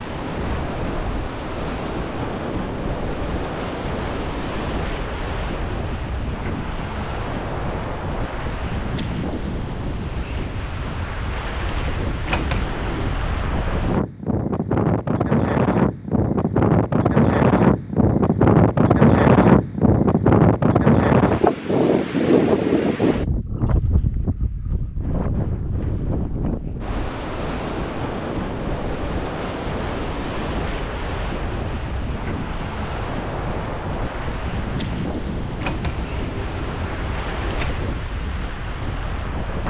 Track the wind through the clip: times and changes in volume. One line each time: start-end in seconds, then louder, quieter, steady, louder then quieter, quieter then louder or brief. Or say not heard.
0.0-39.6 louder then quieter.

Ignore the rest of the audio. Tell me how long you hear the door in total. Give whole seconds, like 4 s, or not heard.
3 s.